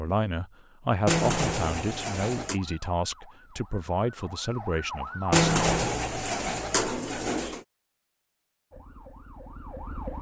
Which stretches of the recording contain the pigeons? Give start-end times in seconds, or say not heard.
1.1-2.6, 5.3-7.6.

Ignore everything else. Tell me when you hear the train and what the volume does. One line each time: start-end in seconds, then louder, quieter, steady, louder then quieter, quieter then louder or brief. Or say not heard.
not heard.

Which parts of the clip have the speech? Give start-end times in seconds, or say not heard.
0.0-5.5.